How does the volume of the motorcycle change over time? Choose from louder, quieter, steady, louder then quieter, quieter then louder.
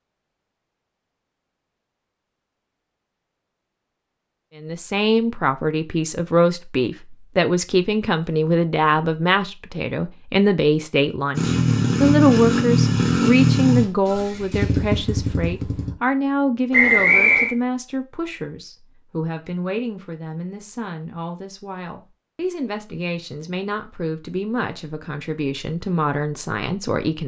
quieter.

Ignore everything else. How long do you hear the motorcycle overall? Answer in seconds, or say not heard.
5 s.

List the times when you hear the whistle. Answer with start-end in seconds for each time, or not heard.
16.7-17.6.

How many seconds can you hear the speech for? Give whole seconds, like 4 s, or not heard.
23 s.